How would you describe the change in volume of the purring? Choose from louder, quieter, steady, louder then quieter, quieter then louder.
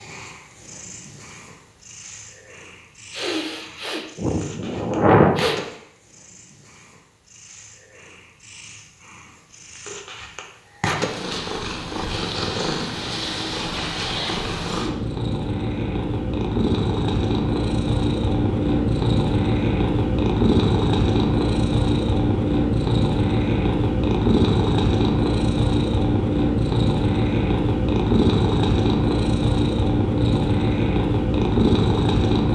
louder.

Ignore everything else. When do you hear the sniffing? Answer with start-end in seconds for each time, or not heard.
3.1-5.6.